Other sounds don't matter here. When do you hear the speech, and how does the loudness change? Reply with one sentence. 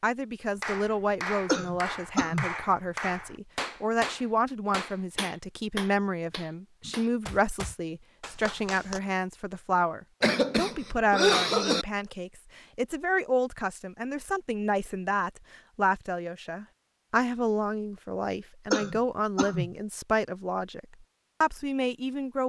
You can hear the speech from 0.0 to 22.4 s, at a steady volume.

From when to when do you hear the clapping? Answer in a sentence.
The clapping can be heard from 0.6 to 9.0 s.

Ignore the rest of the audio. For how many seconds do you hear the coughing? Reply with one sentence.
You can hear the coughing for 4 seconds altogether.